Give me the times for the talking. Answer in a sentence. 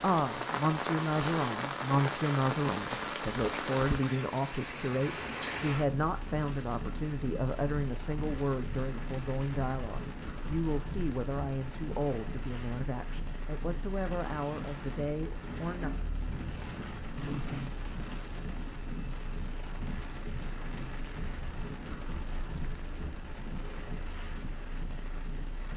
You can hear the talking from 0.0 to 15.9 s.